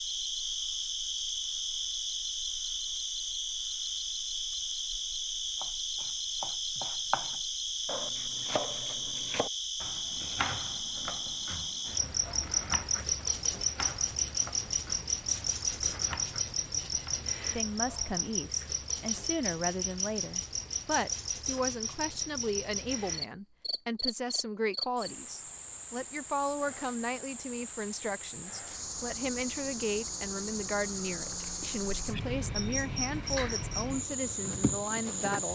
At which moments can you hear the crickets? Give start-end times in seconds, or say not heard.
0.0-35.5.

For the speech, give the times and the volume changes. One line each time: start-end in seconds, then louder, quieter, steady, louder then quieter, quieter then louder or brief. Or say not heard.
17.5-35.5 steady.